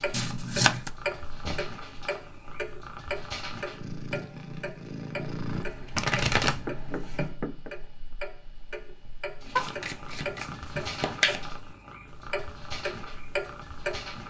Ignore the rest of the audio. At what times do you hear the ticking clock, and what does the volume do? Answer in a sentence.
The ticking clock can be heard from 0.0 to 14.2 s, getting quieter then louder.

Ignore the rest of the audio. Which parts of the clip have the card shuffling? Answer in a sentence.
You can hear the card shuffling from 0.1 to 0.9 s, from 5.5 to 7.3 s and from 9.6 to 11.4 s.